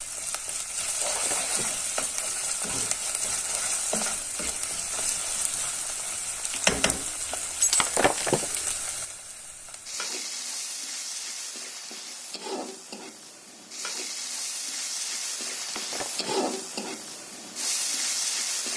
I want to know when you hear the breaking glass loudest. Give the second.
8 s.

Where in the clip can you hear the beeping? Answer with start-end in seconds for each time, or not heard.
not heard.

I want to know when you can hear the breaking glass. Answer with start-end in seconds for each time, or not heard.
0.8-1.8, 7.6-8.5, 15.6-16.4.